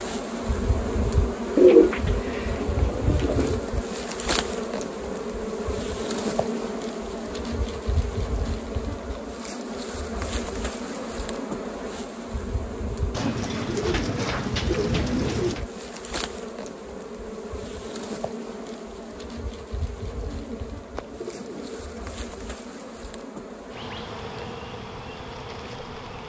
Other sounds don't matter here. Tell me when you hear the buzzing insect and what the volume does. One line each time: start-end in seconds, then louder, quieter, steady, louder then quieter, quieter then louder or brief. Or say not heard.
0.0-26.2 quieter.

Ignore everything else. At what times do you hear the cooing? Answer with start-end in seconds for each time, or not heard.
1.6-3.5, 13.1-15.7, 20.3-22.1.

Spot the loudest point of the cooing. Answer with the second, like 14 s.
2 s.